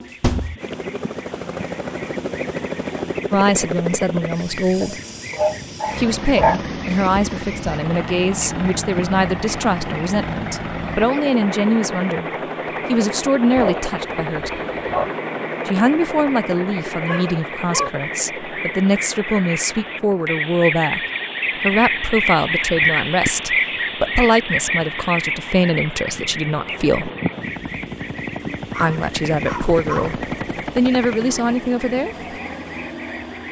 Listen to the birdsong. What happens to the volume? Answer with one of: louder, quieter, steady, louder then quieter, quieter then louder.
louder then quieter.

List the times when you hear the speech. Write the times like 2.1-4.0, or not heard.
3.3-5.0, 6.0-14.6, 15.7-21.0, 21.6-27.1, 28.8-32.1.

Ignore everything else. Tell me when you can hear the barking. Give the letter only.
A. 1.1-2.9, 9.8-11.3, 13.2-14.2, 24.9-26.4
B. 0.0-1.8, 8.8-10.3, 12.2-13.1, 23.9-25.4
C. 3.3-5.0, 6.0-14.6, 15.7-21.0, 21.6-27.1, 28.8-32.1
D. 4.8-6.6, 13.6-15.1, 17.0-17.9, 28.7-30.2
D.